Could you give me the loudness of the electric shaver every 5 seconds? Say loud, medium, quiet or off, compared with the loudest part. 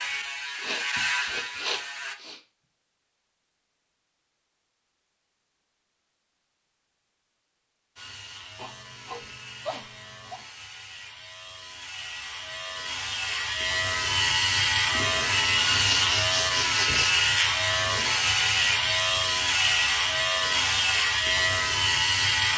medium, quiet, medium, loud, loud.